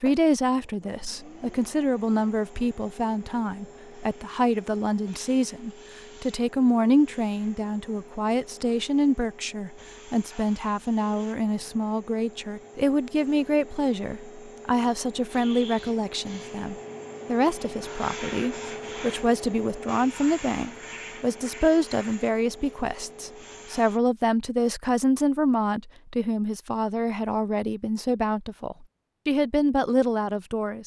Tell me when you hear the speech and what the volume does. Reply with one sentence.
You can hear the speech from 0.0 to 30.8 s, at a steady volume.